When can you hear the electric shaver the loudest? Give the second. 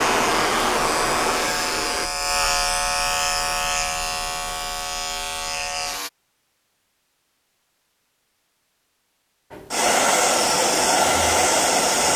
3 s.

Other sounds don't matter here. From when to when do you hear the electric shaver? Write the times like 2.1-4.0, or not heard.
0.0-6.1.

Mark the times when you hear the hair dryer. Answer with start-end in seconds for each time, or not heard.
0.0-2.1, 9.5-12.1.